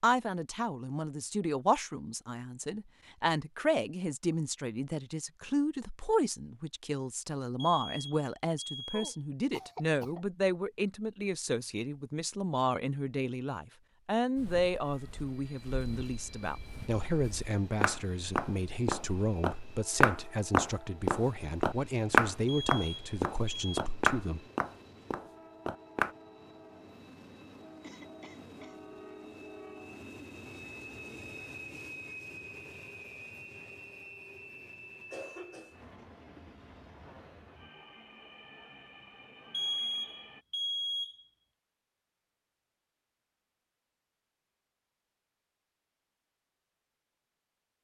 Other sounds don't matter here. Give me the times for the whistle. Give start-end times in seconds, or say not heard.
not heard.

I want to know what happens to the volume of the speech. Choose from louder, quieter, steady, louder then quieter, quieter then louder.
steady.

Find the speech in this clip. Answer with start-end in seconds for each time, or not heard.
0.0-24.4.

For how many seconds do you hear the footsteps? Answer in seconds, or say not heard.
12 s.